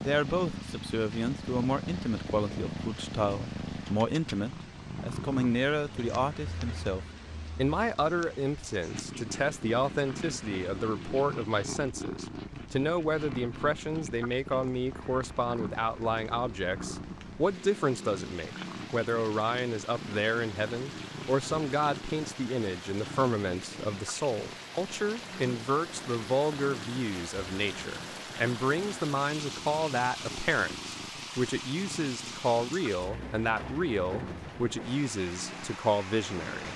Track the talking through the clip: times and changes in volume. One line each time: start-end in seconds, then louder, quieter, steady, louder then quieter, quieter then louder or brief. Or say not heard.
0.0-36.7 steady.